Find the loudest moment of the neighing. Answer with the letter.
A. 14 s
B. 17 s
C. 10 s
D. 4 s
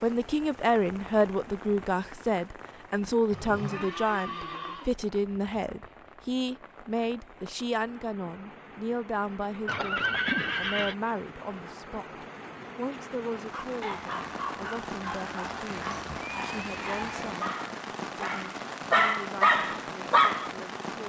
C.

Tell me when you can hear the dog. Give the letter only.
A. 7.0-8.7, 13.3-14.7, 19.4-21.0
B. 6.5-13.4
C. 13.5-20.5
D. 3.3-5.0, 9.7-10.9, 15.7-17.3
C.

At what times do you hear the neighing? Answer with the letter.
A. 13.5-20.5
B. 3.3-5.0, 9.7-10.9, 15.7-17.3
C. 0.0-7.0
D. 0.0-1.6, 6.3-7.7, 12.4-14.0
B.